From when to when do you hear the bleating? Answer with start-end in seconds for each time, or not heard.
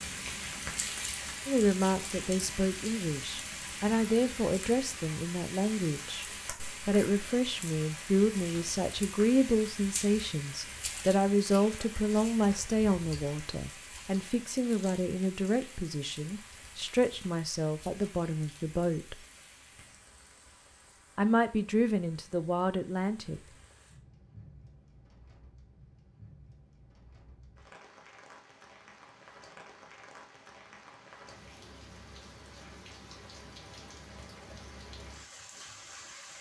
not heard.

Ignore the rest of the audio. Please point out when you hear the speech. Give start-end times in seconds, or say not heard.
1.4-6.2, 6.8-19.1, 21.1-23.4.